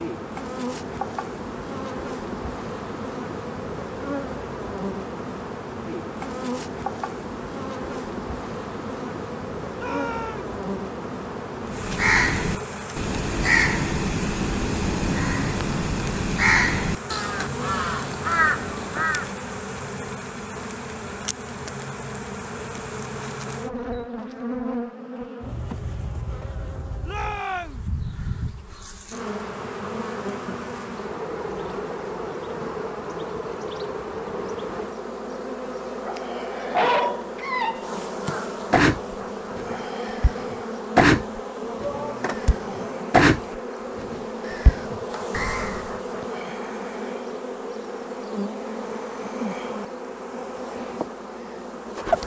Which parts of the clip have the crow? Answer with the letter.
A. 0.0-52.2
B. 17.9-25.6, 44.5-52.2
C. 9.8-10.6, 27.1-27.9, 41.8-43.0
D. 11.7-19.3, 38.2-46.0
D.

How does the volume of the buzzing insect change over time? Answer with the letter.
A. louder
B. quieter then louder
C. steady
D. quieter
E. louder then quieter
C.